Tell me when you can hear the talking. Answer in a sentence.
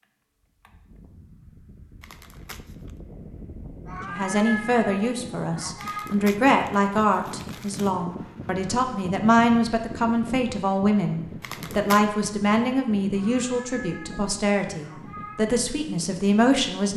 The talking can be heard from 4.0 to 16.9 s.